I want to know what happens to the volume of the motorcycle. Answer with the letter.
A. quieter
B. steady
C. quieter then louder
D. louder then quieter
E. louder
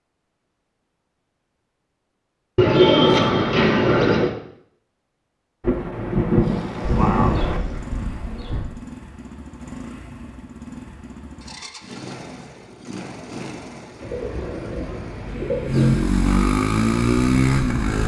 E.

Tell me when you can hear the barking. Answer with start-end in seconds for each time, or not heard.
not heard.